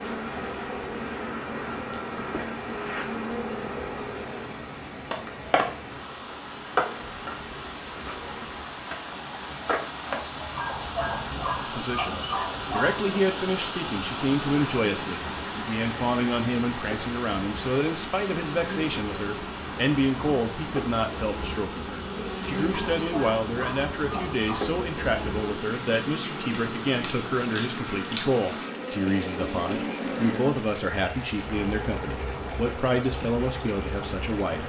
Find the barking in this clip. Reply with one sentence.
You can hear the barking from 10.5 to 13.1 s and from 22.7 to 24.6 s.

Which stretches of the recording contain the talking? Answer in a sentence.
You can hear the talking from 11.6 to 34.6 s.